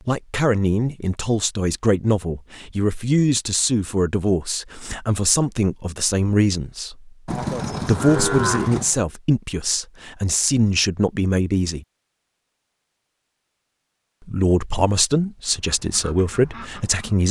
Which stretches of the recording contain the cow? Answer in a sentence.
The cow can be heard from 7.2 to 9.0 s.